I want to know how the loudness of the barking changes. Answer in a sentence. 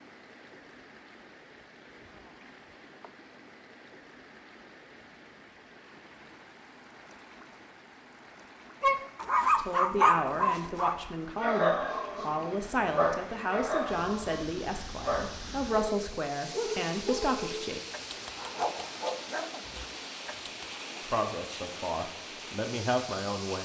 The loudness of the barking goes down.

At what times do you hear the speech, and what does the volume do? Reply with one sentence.
You can hear the speech from 9.6 to 17.8 s, at a steady volume; and briefly from 21.1 to 23.6 s.